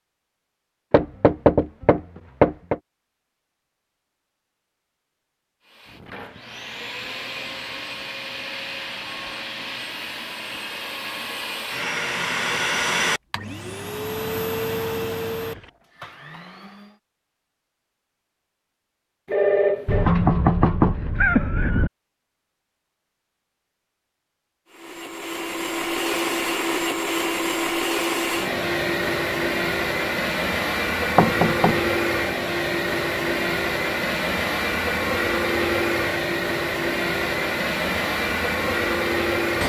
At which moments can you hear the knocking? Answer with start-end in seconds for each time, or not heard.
0.9-2.8, 19.9-21.9, 31.1-31.9.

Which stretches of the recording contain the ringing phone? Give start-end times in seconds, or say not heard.
19.2-20.1.